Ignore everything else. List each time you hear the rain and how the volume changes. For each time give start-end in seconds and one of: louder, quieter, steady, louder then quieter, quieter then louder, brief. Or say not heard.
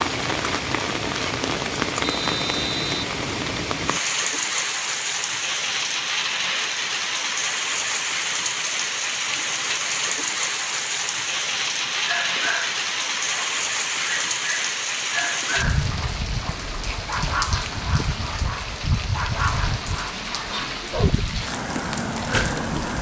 0.0-22.9 steady.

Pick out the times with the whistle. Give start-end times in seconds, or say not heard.
2.0-3.0.